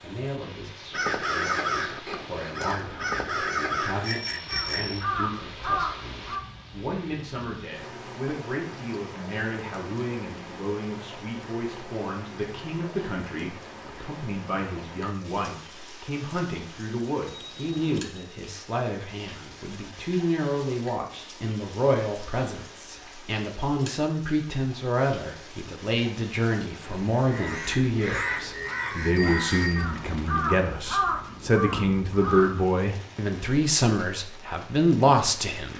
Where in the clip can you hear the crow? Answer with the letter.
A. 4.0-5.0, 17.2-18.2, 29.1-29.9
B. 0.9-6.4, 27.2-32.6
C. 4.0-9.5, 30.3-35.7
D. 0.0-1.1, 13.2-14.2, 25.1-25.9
B.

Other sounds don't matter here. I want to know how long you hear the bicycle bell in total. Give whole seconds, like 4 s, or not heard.
3 s.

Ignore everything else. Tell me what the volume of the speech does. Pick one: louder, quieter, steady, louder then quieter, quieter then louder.
louder.